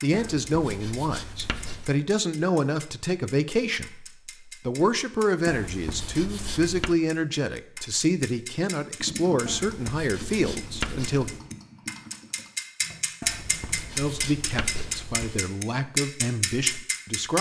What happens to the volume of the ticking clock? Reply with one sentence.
The volume of the ticking clock goes up.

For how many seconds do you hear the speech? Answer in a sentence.
You can hear the speech for 14 seconds altogether.